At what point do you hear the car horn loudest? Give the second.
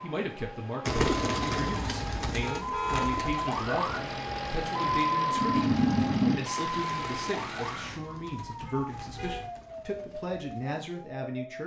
3 s.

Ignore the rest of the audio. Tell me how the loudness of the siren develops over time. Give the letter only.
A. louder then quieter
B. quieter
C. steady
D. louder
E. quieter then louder
A.